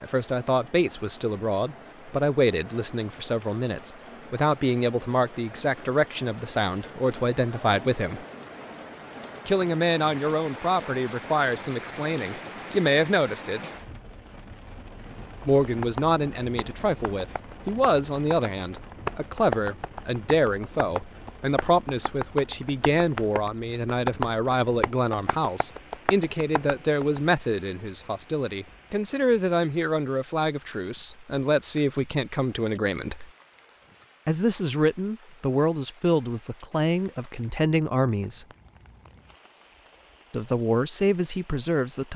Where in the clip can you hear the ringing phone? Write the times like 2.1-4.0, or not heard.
not heard.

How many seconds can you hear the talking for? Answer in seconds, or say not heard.
36 s.